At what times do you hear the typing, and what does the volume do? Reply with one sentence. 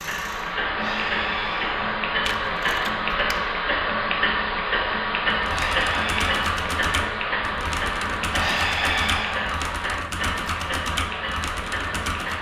The typing can be heard from 5.3 to 12.3 s, at a steady volume.